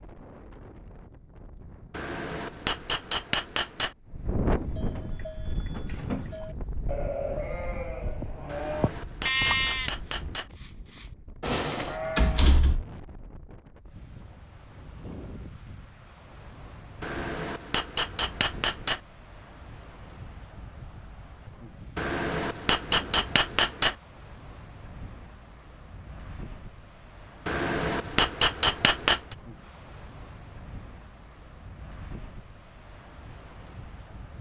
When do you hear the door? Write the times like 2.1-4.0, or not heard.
12.2-12.8.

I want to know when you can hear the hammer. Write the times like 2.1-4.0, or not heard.
1.9-4.0, 8.4-10.5, 17.0-19.0, 21.9-23.9, 27.4-29.4.